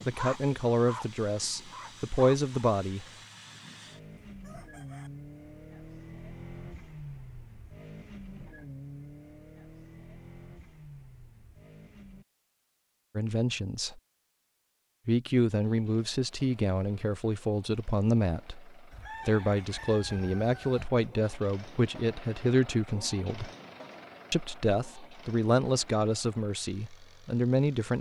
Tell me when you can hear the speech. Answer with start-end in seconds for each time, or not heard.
0.0-3.0, 13.2-14.0, 15.1-23.5, 24.3-27.9.